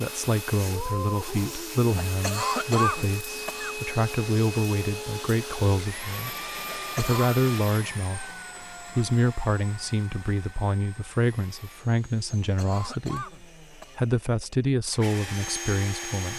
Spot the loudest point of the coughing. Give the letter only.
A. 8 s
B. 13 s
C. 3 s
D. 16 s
C.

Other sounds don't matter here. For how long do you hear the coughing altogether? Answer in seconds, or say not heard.
4 s.